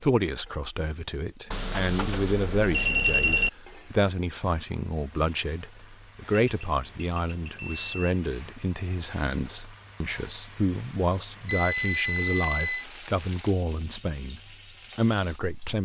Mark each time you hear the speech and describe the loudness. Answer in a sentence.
The speech can be heard from 0.0 to 15.7 s, at a steady volume.